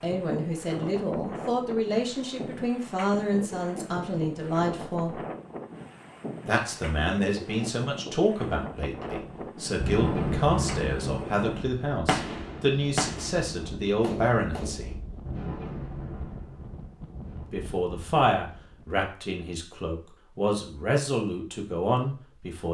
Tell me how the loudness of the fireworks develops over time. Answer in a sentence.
The loudness of the fireworks goes down.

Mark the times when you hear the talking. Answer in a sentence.
You can hear the talking from 0.0 to 5.2 s, from 6.5 to 15.0 s and from 17.4 to 22.6 s.